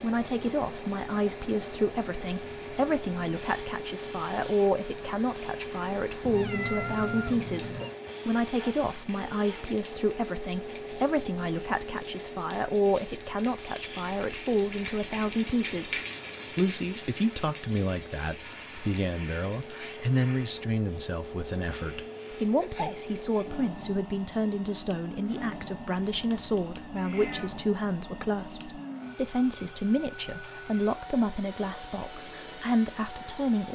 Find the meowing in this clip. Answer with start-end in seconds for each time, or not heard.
6.2-7.9, 26.1-27.6.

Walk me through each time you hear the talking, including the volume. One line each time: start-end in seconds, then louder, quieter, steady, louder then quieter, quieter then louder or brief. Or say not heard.
0.0-33.7 steady.